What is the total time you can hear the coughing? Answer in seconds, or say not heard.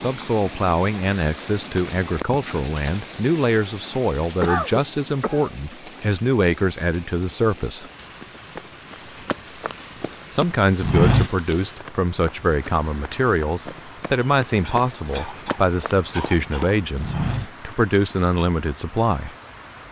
3 s.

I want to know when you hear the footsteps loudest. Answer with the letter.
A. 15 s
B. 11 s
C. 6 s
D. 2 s
B.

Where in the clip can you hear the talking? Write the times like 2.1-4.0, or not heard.
0.0-7.8, 10.3-19.4.